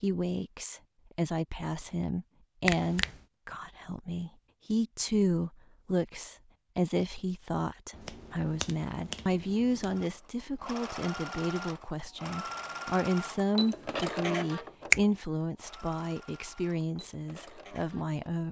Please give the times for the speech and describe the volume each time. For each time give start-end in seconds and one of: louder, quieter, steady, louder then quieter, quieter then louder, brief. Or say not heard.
0.0-18.4 steady.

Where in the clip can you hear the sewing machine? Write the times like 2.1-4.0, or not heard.
9.9-18.2.